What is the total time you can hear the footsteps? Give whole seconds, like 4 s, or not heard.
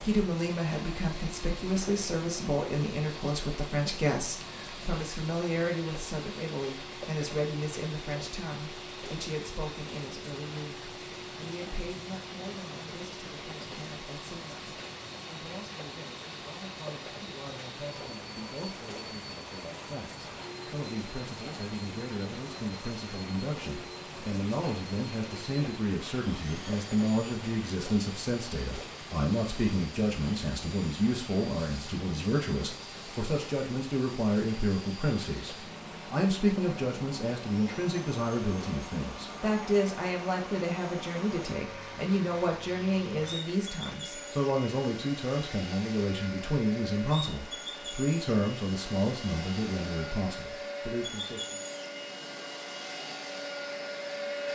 not heard.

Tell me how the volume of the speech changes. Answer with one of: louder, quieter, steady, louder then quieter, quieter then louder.
quieter then louder.